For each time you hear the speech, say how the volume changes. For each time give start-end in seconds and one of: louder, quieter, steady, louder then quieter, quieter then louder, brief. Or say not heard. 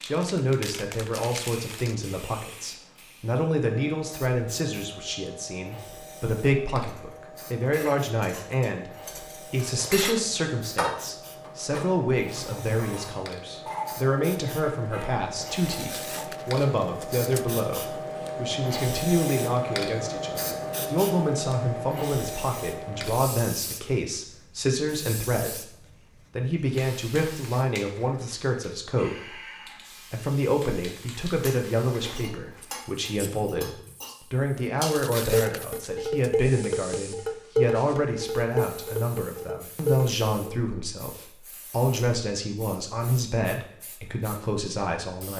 0.0-45.3 steady.